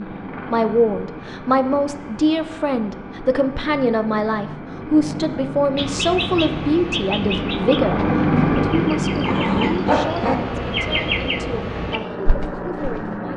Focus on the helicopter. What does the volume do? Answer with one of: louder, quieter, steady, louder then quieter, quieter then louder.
louder then quieter.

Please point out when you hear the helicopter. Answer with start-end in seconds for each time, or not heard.
0.0-13.3.